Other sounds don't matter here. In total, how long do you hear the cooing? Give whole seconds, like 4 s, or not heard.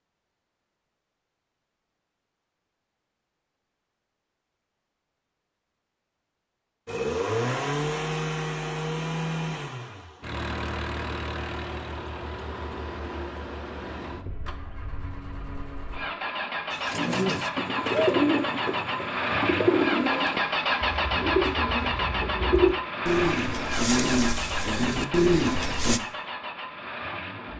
9 s.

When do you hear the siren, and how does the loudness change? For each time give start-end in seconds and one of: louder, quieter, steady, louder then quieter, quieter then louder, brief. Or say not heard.
not heard.